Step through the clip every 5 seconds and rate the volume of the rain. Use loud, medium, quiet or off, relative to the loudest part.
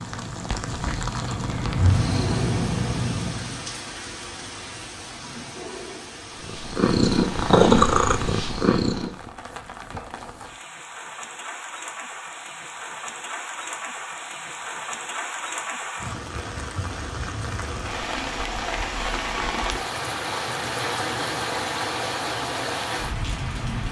medium, medium, medium, loud, loud.